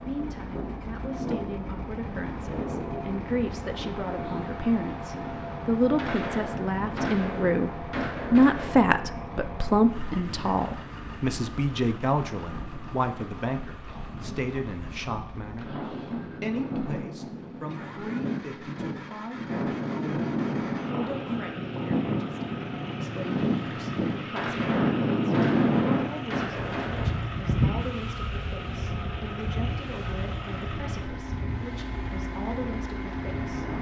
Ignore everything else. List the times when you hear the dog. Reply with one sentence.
The dog can't be heard in this clip.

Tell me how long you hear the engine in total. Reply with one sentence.
You can hear the engine for 34 seconds altogether.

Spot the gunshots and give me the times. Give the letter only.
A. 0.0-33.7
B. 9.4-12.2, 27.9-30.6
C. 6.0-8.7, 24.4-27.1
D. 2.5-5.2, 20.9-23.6
C.